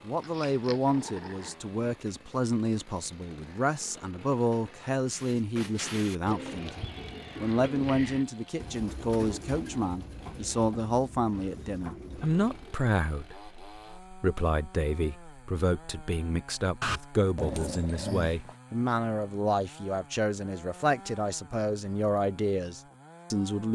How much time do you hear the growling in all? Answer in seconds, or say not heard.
3 s.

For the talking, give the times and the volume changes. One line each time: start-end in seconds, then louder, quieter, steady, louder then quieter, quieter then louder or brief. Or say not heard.
0.1-23.7 steady.